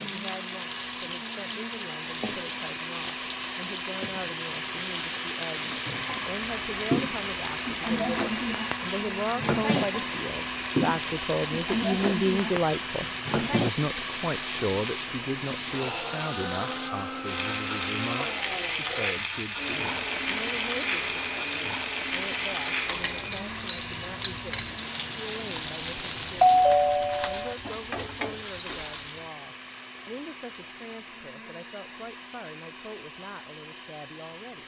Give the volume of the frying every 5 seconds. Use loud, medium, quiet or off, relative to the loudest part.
loud, loud, loud, loud, loud, loud, off.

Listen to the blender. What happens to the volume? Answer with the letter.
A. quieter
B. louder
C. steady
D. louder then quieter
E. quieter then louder
A.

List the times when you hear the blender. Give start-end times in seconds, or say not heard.
0.0-34.6.